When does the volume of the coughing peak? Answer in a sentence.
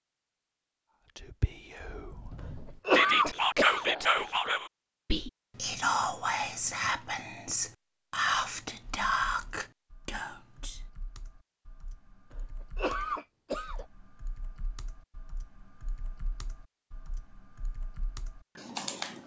The volume of the coughing peaks at 3 seconds.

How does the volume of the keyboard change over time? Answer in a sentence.
The loudness of the keyboard goes up.